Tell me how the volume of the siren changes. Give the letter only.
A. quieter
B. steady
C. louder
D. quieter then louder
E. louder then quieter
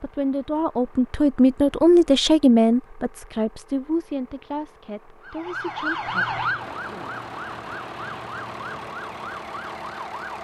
A.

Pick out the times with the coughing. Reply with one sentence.
You can't hear the coughing here.